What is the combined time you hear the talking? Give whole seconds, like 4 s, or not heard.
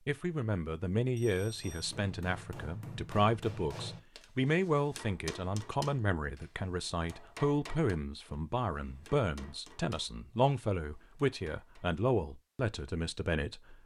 14 s.